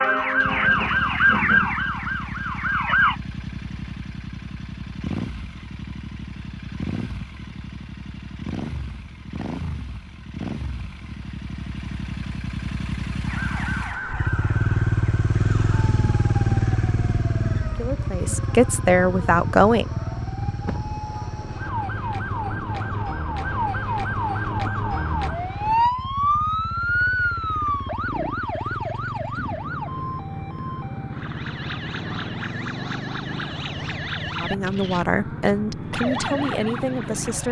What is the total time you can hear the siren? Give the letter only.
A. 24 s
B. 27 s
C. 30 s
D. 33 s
B.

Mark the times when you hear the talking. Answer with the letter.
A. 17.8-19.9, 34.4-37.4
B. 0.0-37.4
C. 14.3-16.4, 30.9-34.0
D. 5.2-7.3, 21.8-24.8
A.